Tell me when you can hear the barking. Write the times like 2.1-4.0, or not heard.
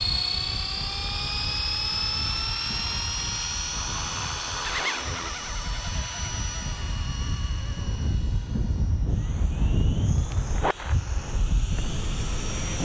not heard.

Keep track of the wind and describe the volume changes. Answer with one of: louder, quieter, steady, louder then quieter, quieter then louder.
louder.